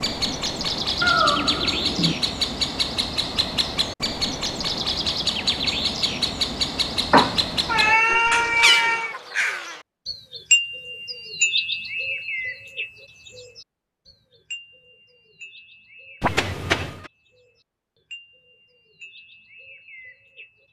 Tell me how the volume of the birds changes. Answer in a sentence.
The loudness of the birds goes down.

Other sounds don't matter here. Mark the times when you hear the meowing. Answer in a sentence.
The meowing can be heard from 1.0 to 2.1 s, from 7.1 to 9.2 s and from 16.2 to 16.9 s.